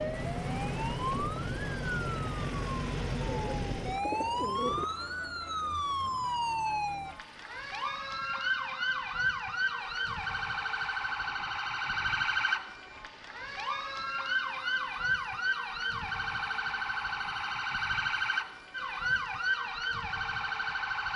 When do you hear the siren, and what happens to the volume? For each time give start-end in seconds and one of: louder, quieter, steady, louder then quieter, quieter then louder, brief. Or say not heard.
0.0-21.1 steady.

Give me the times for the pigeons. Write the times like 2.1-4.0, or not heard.
3.2-4.8.